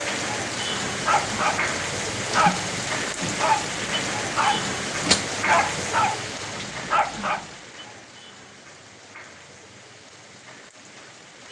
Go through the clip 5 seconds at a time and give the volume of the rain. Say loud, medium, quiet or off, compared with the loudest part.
loud, medium, quiet.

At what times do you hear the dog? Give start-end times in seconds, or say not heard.
0.8-7.5.